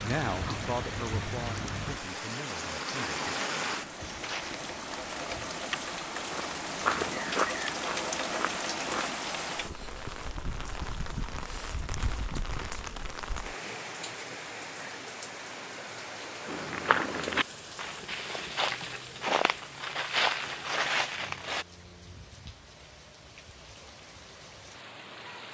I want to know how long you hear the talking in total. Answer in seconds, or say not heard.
3 s.